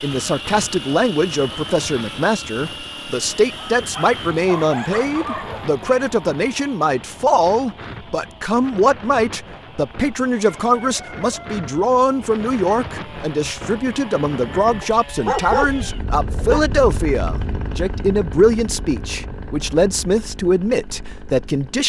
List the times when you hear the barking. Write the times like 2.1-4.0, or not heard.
3.5-5.7, 14.8-16.6.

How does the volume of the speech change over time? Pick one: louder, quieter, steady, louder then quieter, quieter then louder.
steady.